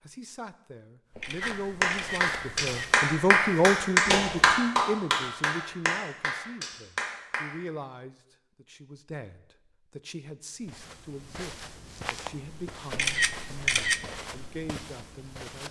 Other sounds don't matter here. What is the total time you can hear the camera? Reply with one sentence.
The camera can be heard for 3 seconds in total.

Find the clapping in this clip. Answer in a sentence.
You can hear the clapping from 1.4 to 7.5 s.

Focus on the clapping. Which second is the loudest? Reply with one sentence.
The loudest moment of the clapping is at 4 seconds.